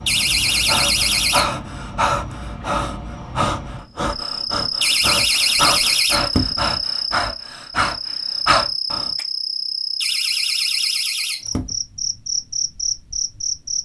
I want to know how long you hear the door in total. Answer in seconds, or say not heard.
5 s.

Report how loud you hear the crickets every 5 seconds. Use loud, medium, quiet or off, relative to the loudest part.
medium, loud, loud.